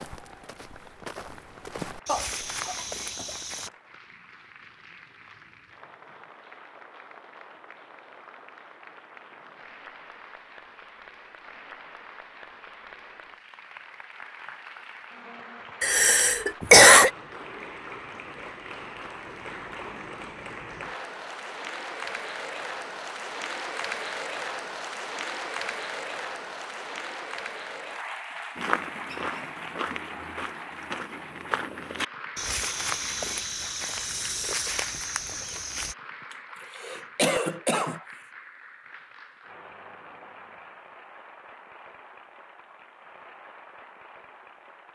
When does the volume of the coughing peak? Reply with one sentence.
The loudest moment of the coughing is at 17 seconds.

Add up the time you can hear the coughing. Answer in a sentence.
You can hear the coughing for 5 seconds altogether.